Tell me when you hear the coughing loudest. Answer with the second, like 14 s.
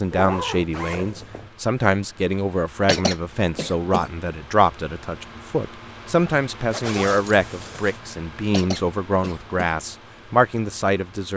3 s.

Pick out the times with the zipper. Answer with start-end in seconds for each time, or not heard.
0.1-1.5, 6.7-8.0.